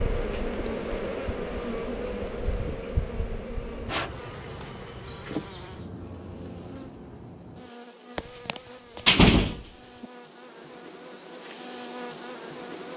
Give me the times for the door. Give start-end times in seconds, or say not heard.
8.2-10.1.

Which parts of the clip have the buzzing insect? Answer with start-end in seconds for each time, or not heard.
0.0-12.9.